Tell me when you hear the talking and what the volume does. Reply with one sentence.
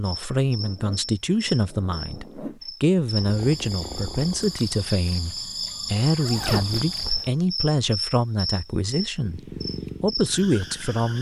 You can hear the talking from 0.0 to 11.1 s, at a steady volume.